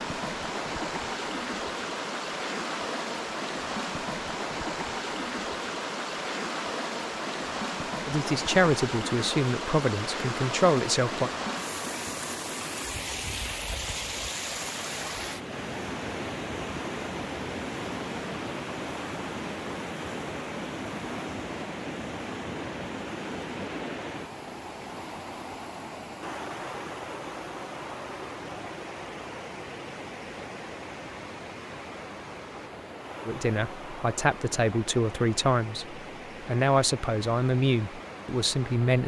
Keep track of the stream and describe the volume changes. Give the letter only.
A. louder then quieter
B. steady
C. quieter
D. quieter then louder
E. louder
C.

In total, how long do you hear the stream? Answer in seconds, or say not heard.
39 s.